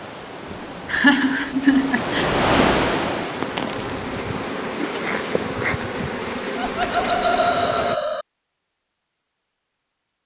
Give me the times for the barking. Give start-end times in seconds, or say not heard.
not heard.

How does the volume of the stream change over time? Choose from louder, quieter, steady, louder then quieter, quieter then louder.
louder then quieter.